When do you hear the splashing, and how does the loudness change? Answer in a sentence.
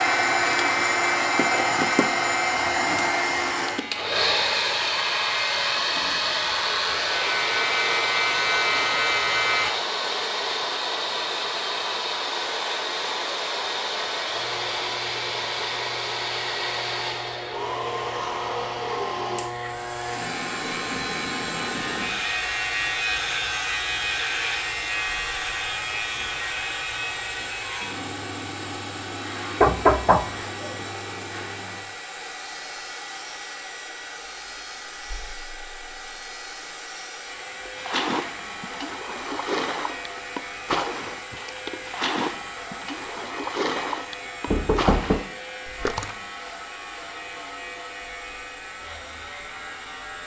The splashing can be heard from 37.6 to 46.1 s, at a steady volume.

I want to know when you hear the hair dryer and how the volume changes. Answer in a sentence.
The hair dryer can be heard from 0.0 to 50.2 s, getting quieter.